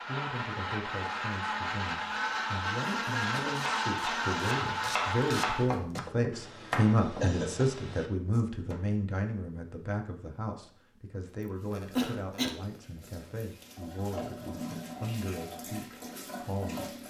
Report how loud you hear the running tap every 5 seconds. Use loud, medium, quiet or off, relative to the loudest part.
off, off, loud, loud.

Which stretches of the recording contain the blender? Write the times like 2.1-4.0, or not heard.
0.0-5.7.